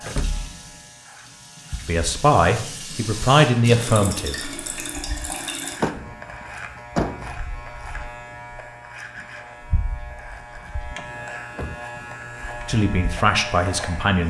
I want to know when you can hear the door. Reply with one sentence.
You can hear the door from 0.1 to 0.5 s, from 5.8 to 7.4 s and from 10.9 to 12.3 s.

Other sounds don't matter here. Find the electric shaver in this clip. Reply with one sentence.
The electric shaver can be heard from 0.0 to 14.2 s.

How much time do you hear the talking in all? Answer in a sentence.
You can hear the talking for 4 seconds altogether.